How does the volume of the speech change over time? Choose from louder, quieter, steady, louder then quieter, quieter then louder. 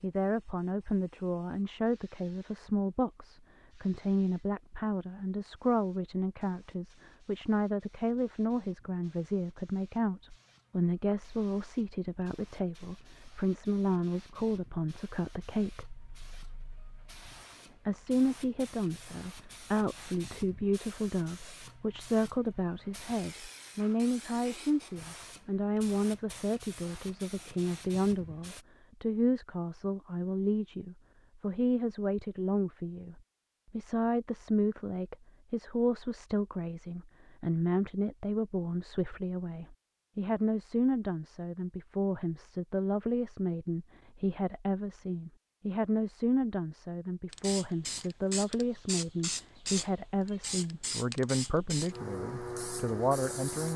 steady.